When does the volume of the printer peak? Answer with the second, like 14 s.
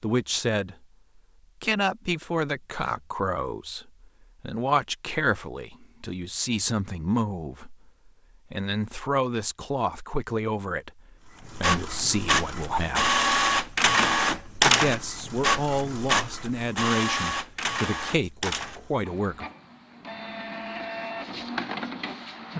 14 s.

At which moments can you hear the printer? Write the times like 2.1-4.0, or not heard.
11.4-22.5.